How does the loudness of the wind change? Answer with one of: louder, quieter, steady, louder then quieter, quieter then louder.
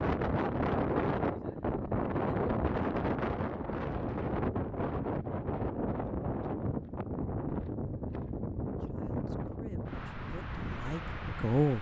quieter.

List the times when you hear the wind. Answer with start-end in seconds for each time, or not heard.
0.0-11.7.